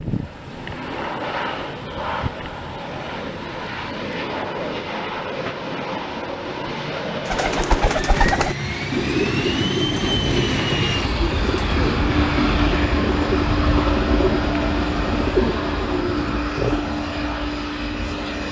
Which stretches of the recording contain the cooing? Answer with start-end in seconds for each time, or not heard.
7.2-16.8.